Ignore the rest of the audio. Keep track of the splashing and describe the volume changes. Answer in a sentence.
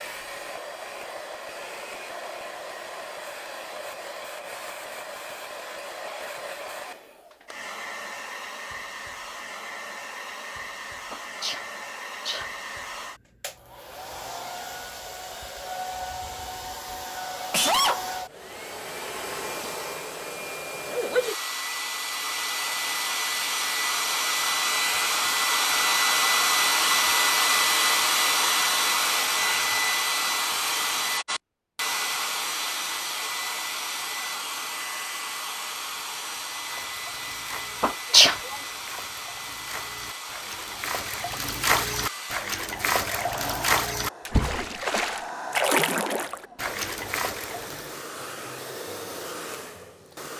The volume of the splashing goes up.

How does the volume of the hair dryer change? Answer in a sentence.
The volume of the hair dryer goes up, then down.